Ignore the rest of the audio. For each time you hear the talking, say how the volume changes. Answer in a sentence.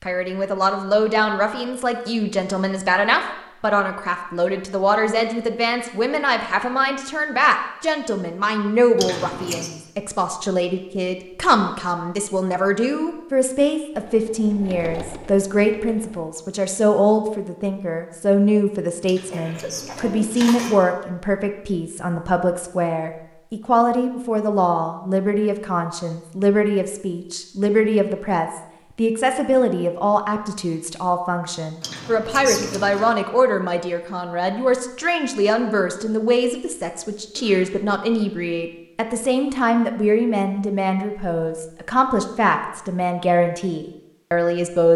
You can hear the talking from 0.0 to 44.9 s, at a steady volume.